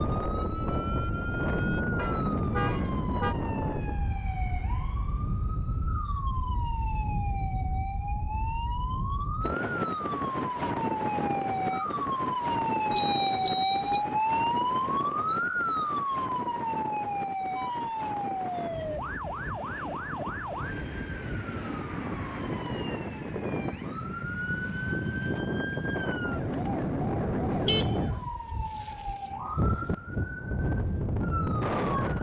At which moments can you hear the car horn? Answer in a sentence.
You can hear the car horn from 1.9 to 3.4 s, from 12.9 to 14.0 s and from 27.5 to 29.1 s.